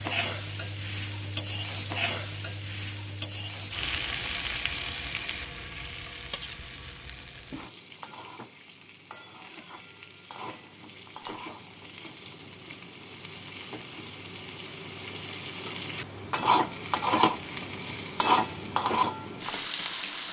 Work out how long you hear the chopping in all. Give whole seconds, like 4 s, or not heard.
not heard.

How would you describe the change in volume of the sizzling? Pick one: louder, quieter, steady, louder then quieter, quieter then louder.
quieter then louder.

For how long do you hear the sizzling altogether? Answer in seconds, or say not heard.
20 s.